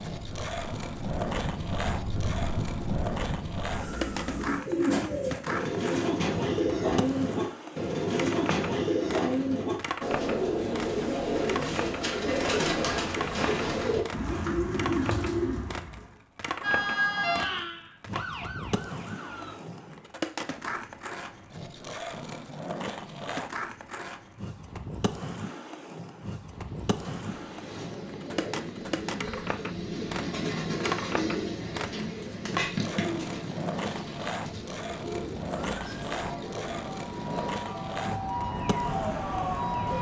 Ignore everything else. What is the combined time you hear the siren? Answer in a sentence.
The siren can be heard for 12 seconds in total.